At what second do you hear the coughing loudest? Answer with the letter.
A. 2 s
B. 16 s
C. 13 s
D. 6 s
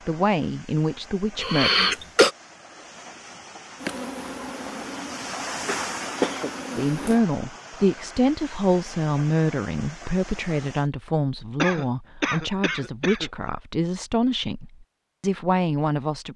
A.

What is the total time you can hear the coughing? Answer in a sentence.
The coughing can be heard for 4 seconds in total.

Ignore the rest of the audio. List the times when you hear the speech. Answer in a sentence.
The speech can be heard from 0.1 to 1.7 s and from 6.8 to 16.3 s.